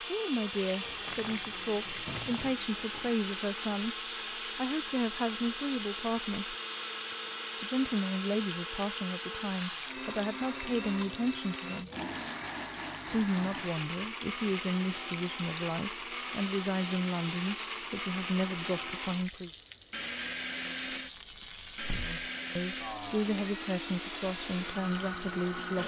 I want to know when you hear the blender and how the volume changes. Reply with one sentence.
The blender can be heard from 0.0 to 25.8 s, at a steady volume.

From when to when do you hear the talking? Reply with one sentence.
You can hear the talking from 0.1 to 4.0 s, from 4.5 to 6.5 s, from 7.6 to 11.9 s, from 13.1 to 19.5 s and from 22.0 to 25.8 s.